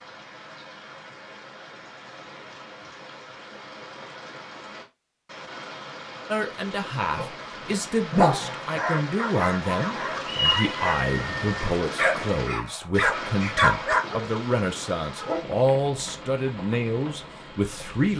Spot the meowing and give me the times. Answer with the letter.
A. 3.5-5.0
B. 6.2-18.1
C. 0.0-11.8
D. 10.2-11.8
D.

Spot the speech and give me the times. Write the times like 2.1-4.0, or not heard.
6.2-18.1.